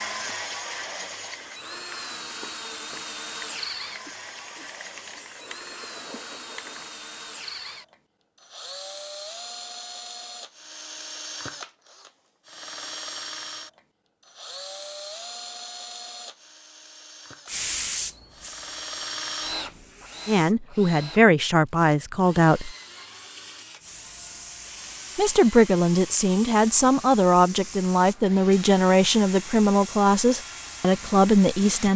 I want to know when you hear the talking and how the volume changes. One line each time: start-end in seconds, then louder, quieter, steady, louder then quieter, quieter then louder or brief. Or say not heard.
20.2-22.8 brief
25.1-31.9 steady.